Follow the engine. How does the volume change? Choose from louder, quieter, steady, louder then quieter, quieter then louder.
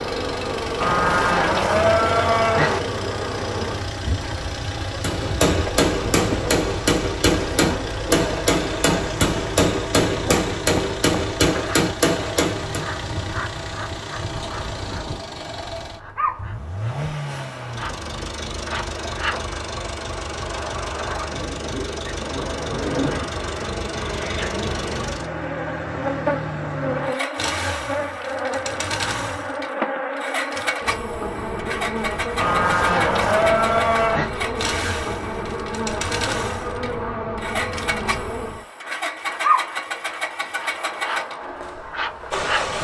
steady.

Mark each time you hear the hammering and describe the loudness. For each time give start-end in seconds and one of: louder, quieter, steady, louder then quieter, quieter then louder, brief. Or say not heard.
5.0-12.8 steady.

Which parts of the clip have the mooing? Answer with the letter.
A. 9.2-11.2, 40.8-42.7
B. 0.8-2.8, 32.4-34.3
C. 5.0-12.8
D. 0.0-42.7
B.